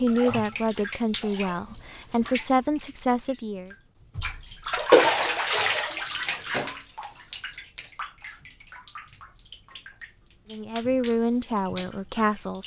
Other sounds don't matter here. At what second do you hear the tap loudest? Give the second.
5 s.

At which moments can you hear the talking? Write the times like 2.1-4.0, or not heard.
0.0-3.7, 10.5-12.6.